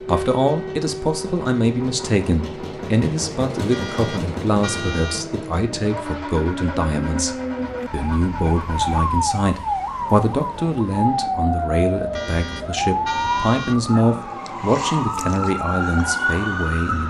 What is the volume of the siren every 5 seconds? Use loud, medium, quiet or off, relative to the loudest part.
medium, loud, loud, loud.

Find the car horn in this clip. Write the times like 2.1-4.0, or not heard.
3.7-5.2, 12.1-13.8.